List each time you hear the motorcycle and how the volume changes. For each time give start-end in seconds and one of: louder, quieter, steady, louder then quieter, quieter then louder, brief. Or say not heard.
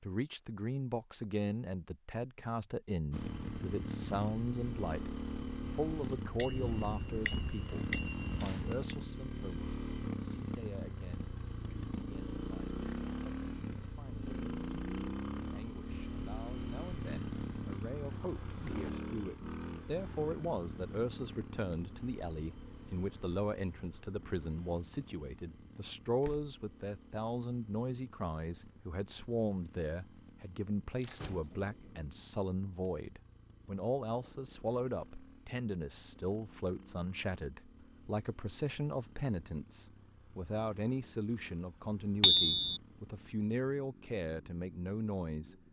3.1-45.6 quieter.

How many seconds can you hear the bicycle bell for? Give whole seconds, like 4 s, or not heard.
3 s.